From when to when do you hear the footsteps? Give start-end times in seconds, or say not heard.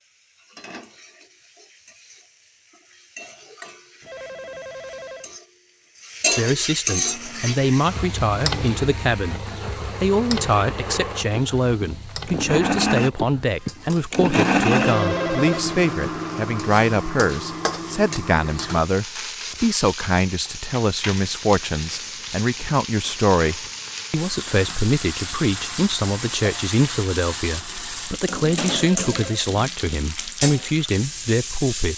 not heard.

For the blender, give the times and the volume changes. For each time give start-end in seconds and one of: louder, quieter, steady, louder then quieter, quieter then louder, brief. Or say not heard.
7.0-18.8 louder then quieter.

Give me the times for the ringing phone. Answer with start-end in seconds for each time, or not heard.
4.0-5.3, 14.8-15.7, 28.7-29.4.